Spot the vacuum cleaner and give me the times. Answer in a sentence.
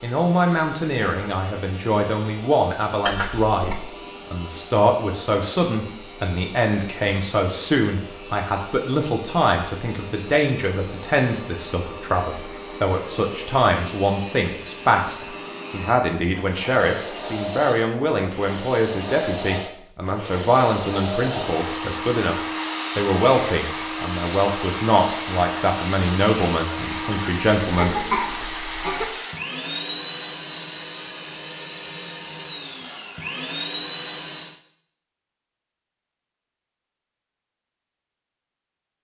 The vacuum cleaner can be heard from 0.0 to 34.6 s.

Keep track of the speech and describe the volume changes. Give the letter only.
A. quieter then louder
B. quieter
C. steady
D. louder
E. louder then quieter
C.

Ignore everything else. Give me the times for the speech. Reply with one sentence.
The speech can be heard from 0.0 to 22.4 s and from 22.9 to 28.4 s.